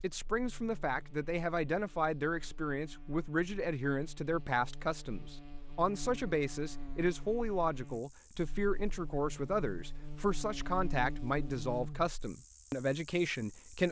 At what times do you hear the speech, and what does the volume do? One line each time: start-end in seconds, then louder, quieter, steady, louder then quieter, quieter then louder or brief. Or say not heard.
0.0-13.8 steady.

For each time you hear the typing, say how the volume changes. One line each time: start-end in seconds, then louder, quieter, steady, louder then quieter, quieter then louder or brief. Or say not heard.
not heard.